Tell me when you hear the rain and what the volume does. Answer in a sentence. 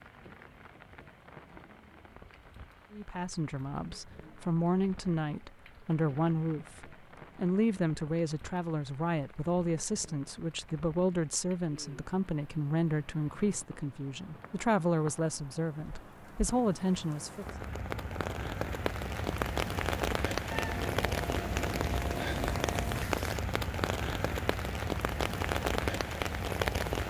You can hear the rain from 0.0 to 27.0 s, getting louder.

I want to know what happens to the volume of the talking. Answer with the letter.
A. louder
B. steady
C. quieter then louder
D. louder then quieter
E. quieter
B.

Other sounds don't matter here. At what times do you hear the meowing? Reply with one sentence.
The meowing can be heard from 20.5 to 23.1 s.